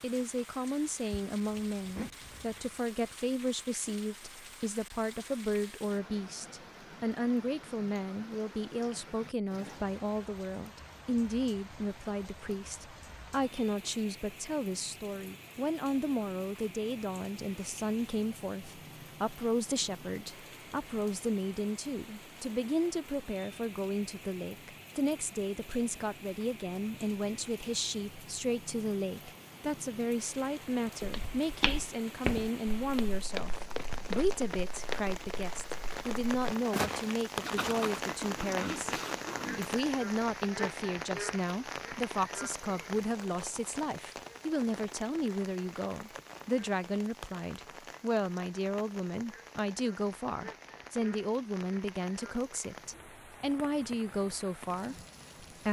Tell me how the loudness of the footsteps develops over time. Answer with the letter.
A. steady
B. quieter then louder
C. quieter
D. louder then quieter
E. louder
B.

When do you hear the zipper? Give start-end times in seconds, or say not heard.
1.2-2.8, 33.3-34.3, 37.4-39.8.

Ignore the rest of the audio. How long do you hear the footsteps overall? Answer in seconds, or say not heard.
7 s.